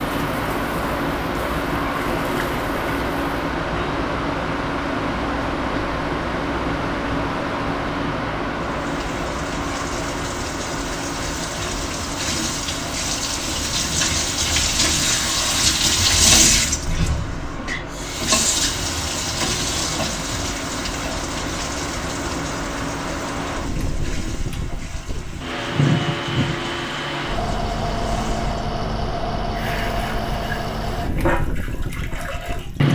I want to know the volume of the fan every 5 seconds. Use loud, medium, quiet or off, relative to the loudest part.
loud, loud, medium, medium, medium, loud, loud.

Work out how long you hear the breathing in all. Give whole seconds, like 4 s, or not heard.
not heard.